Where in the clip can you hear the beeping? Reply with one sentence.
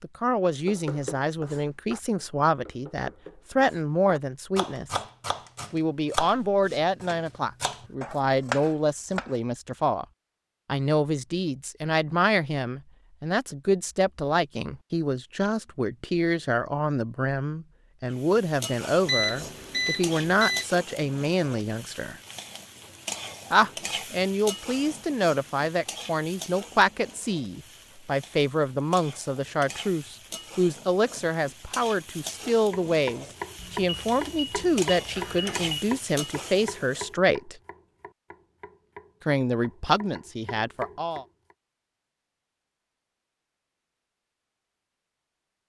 The beeping can be heard from 19.1 to 20.6 s and from 33.5 to 35.8 s.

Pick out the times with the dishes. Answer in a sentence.
You can't hear the dishes here.